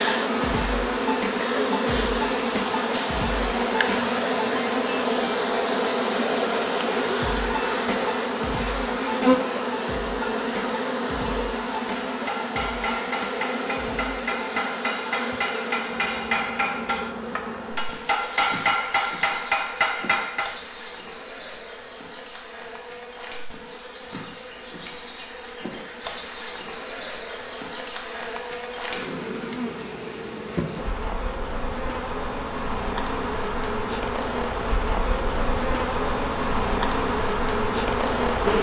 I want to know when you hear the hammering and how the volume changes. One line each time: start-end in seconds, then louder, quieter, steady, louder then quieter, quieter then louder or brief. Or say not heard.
12.1-20.6 louder.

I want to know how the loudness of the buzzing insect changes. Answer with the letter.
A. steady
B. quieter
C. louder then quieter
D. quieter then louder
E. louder
D.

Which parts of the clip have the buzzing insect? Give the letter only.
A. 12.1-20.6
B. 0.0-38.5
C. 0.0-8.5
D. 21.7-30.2
B.